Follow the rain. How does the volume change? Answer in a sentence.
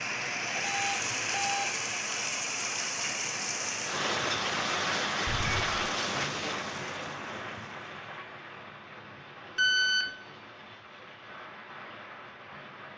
The loudness of the rain goes down.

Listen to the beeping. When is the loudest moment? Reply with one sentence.
The loudest moment of the beeping is at 10 seconds.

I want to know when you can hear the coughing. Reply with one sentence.
The coughing can't be heard in this clip.